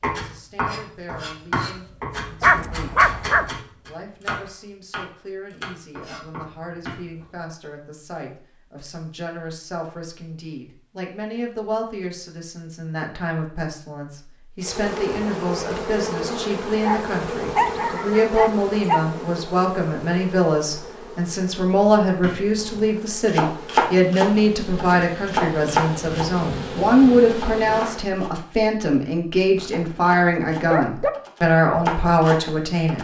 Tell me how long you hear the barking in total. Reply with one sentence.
You can hear the barking for 5 seconds altogether.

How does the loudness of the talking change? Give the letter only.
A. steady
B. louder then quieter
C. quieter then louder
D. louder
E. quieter
D.